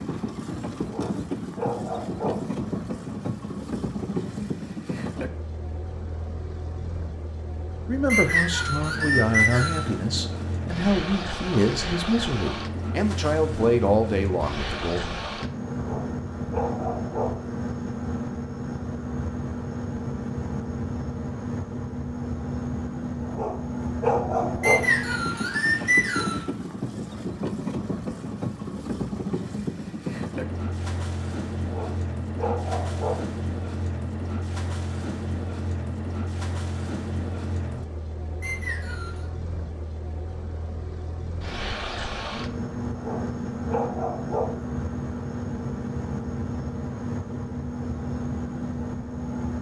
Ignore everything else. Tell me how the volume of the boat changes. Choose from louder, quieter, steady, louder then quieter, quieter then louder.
steady.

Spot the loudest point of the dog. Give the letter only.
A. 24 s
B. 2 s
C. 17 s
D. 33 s
A.